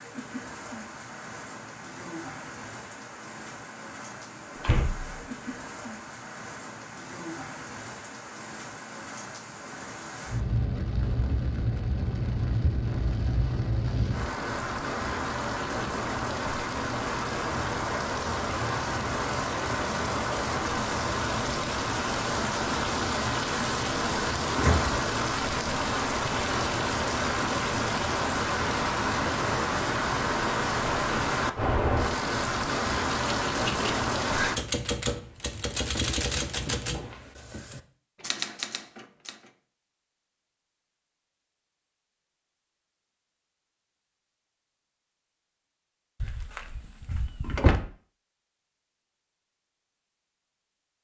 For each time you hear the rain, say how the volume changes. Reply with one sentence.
The rain can be heard from 0.0 to 34.6 s, getting louder.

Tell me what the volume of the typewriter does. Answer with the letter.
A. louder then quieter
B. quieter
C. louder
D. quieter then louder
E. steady
D.